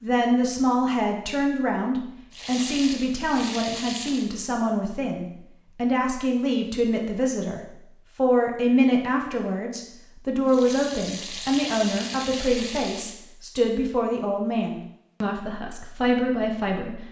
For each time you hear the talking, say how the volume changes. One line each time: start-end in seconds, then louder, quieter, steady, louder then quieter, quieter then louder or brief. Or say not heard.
0.0-17.0 steady.